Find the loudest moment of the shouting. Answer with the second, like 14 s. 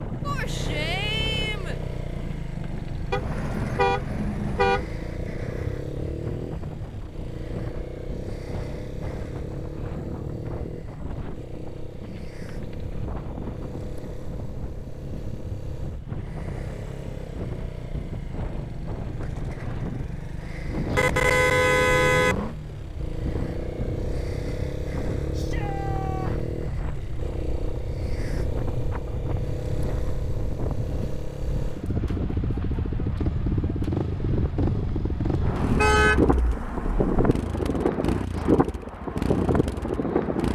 1 s.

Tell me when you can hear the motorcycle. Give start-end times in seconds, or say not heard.
0.0-40.4.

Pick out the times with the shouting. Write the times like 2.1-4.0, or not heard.
0.2-1.8, 25.3-26.4.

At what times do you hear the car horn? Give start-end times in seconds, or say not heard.
3.1-4.9, 20.9-22.6, 35.6-37.4.